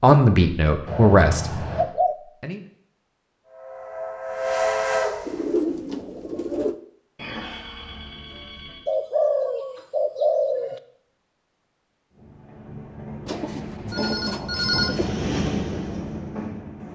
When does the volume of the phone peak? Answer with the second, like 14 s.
15 s.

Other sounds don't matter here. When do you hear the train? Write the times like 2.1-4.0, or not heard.
3.5-5.5, 12.1-16.9.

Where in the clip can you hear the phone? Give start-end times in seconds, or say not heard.
0.8-1.9, 7.2-8.9, 13.8-15.1.